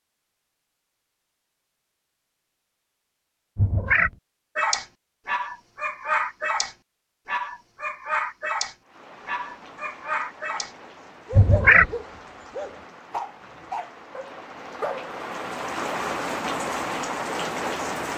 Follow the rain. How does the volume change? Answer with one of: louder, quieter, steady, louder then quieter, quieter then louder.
louder.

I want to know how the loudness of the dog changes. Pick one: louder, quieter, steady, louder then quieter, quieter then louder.
quieter.